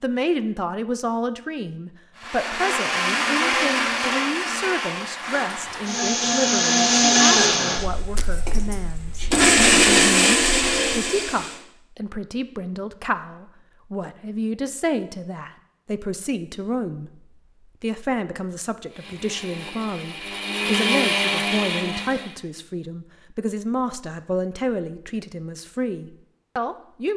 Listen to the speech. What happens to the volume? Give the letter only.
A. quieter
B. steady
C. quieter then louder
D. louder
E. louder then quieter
B.